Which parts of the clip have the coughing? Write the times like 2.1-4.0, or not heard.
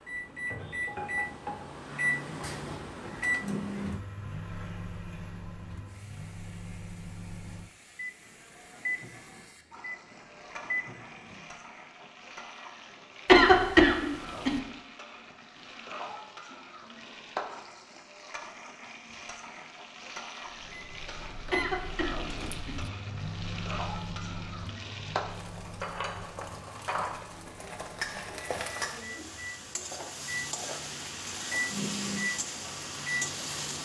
13.2-14.5, 21.5-22.8.